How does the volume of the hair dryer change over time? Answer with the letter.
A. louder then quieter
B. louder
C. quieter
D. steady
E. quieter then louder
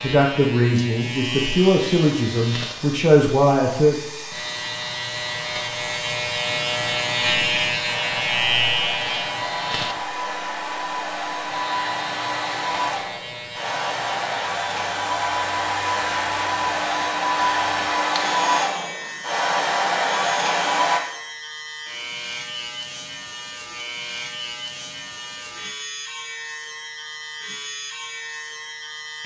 B.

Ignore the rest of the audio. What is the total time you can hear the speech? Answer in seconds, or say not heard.
4 s.